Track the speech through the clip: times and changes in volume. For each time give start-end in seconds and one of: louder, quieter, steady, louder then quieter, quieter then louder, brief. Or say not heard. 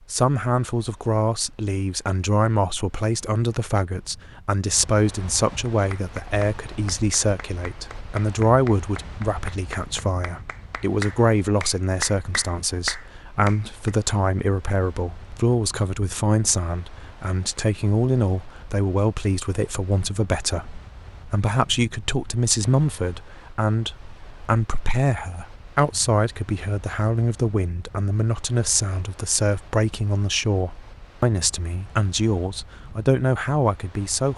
0.1-34.3 steady.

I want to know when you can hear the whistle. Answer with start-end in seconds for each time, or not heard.
not heard.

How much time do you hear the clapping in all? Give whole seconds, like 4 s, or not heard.
8 s.